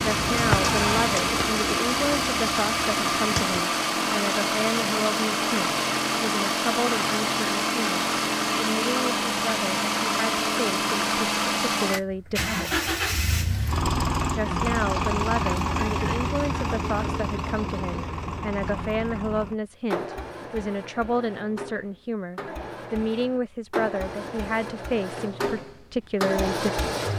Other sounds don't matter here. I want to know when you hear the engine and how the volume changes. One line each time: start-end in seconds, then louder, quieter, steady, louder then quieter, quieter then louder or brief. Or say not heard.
0.0-27.1 quieter.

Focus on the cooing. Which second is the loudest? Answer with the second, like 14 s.
1 s.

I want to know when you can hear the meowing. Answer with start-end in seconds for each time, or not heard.
not heard.